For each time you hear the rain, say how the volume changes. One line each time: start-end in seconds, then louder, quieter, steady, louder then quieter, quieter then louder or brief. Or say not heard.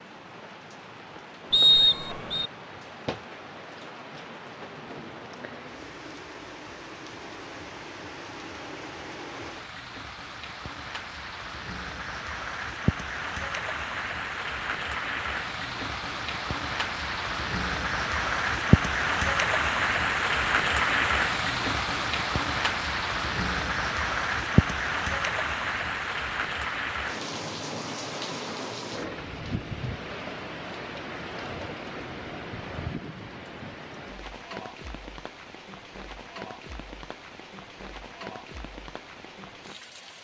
0.0-40.2 louder then quieter.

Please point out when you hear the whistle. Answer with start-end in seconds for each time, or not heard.
1.5-2.5.